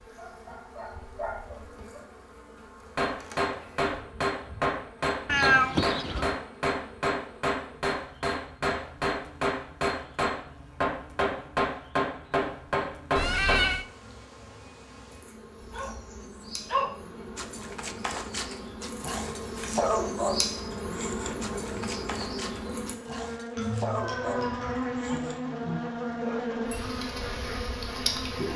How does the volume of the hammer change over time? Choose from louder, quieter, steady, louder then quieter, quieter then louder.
steady.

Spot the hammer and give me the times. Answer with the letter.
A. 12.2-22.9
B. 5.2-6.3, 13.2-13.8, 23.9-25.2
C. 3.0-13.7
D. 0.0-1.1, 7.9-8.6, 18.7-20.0
C.